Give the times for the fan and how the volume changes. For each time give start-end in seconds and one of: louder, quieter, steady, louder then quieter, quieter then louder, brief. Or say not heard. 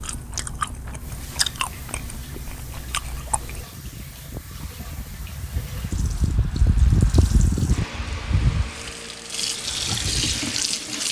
3.5-11.0 louder then quieter.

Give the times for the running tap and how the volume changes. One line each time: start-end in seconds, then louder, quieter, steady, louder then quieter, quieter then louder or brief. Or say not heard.
0.1-11.0 louder.